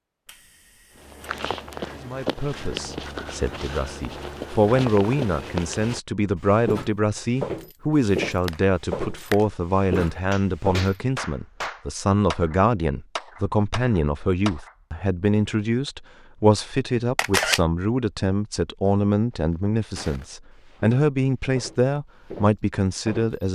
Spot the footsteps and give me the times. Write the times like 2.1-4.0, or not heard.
0.9-10.9, 19.4-23.4.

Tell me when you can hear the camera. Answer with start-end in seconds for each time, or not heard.
0.2-1.4, 17.1-17.6.